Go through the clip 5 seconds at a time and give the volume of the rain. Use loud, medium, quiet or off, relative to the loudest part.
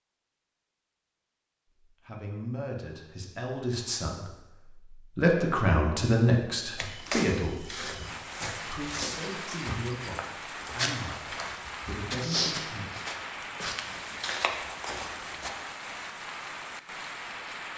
off, loud, loud, loud.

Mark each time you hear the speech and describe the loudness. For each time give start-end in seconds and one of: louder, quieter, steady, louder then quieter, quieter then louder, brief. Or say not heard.
1.9-12.8 louder then quieter.